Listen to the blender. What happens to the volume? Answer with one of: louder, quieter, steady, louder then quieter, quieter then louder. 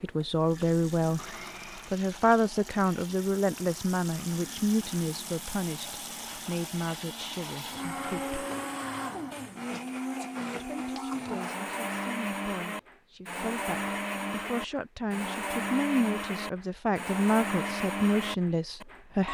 louder.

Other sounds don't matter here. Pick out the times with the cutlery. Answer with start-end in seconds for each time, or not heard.
not heard.